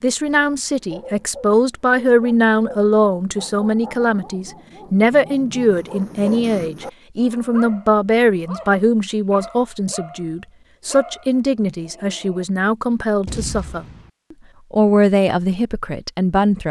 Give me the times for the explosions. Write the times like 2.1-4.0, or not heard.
13.2-14.1.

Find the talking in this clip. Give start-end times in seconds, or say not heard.
0.0-16.6.